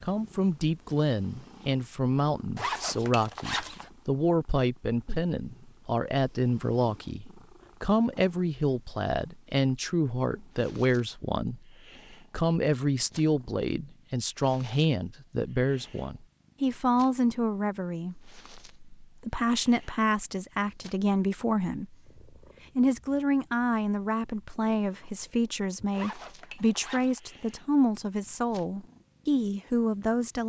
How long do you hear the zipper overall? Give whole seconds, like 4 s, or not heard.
3 s.